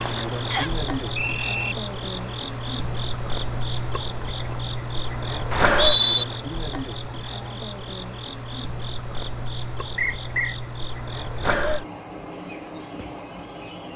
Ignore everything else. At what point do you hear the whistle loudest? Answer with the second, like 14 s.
6 s.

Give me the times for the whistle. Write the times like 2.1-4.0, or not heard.
0.5-1.8, 5.5-6.2, 9.9-10.6.